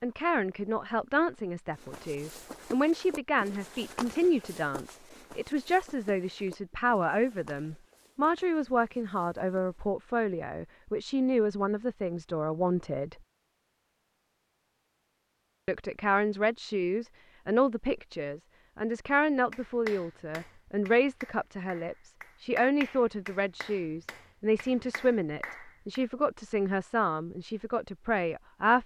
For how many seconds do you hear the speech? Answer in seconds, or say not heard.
26 s.